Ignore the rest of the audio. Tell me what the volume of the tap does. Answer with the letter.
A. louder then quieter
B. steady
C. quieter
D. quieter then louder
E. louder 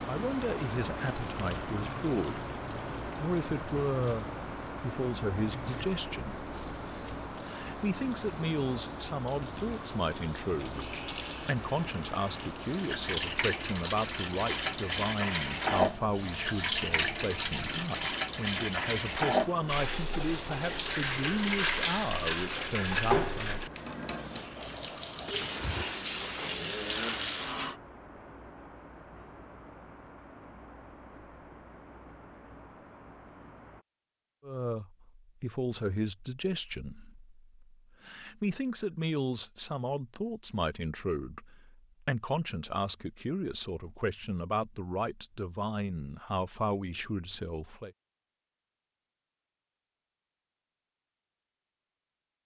E.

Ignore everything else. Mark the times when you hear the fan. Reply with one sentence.
The fan can be heard from 0.0 to 33.9 s.